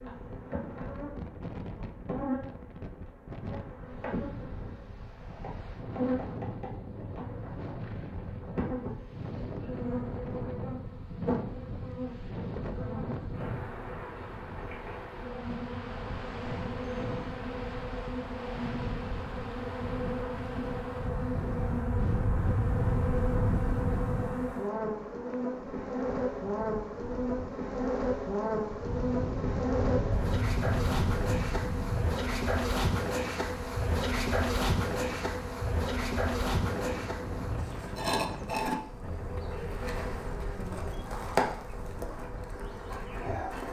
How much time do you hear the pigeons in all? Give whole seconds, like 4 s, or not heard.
2 s.